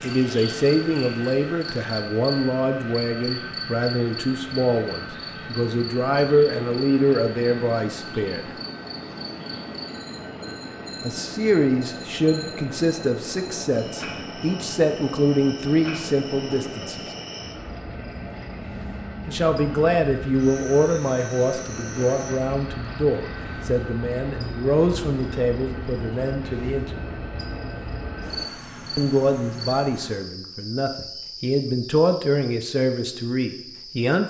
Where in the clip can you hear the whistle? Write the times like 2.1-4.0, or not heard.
not heard.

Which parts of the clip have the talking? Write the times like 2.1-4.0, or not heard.
0.0-8.4, 11.0-17.1, 19.2-27.1, 28.9-34.2.